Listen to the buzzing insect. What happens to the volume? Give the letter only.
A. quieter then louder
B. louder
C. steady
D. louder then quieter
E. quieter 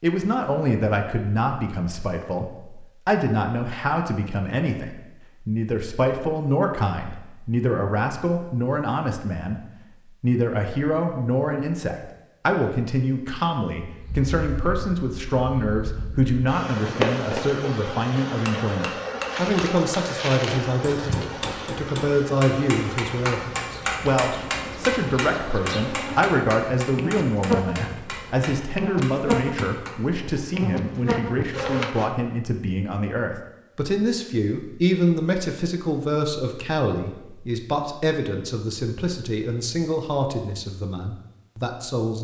A.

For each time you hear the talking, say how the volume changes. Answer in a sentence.
The talking can be heard from 0.0 to 42.2 s, at a steady volume.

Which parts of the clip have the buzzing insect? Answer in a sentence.
You can hear the buzzing insect from 13.9 to 32.1 s.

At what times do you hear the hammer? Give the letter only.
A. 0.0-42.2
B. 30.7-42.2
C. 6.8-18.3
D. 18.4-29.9
D.